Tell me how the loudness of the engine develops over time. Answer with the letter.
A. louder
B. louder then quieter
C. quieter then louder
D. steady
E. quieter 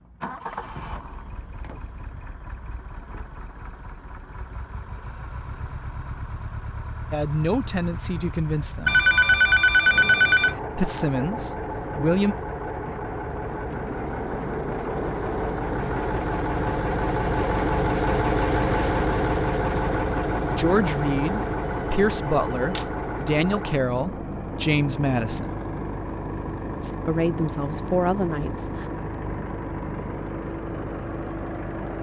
B.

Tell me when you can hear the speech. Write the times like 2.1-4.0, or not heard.
7.1-9.1, 10.8-12.3, 20.5-25.5, 26.8-28.9.